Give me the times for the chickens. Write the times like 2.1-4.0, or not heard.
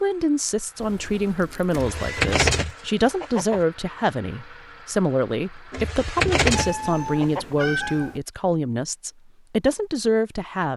1.7-3.6, 5.7-7.5.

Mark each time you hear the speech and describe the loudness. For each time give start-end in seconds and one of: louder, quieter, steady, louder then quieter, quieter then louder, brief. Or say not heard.
0.0-10.7 steady.